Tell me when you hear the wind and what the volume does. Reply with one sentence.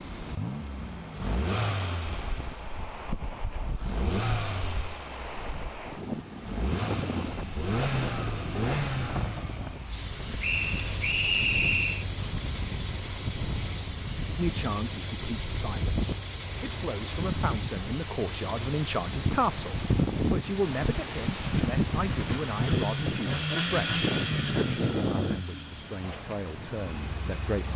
The wind can be heard from 0.0 to 27.7 s, getting louder.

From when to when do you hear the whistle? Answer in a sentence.
You can hear the whistle from 10.4 to 12.1 s.